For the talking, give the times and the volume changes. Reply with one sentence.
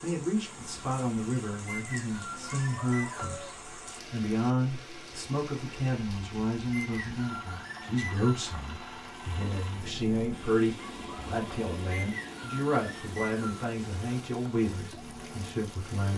You can hear the talking from 0.0 to 16.1 s, at a steady volume.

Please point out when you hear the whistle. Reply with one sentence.
You can hear the whistle from 1.6 to 3.5 s, from 6.7 to 8.5 s and from 11.9 to 13.7 s.